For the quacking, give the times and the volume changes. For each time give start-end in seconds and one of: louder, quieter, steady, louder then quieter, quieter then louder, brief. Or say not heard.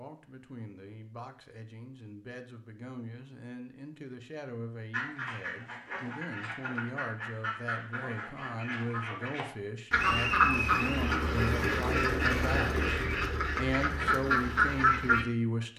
4.9-15.2 louder.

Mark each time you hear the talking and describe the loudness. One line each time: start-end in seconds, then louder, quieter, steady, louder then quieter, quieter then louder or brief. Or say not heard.
0.0-15.7 louder.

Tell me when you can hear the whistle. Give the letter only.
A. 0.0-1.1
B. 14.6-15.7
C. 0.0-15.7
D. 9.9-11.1
D.